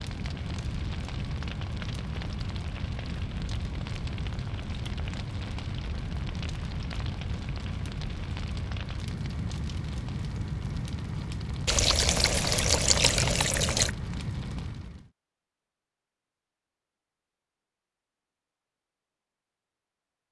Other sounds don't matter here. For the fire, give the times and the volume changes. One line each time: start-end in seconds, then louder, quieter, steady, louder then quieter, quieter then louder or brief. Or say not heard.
0.0-15.1 steady.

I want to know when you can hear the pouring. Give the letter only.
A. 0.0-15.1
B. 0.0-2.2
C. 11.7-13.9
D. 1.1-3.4
C.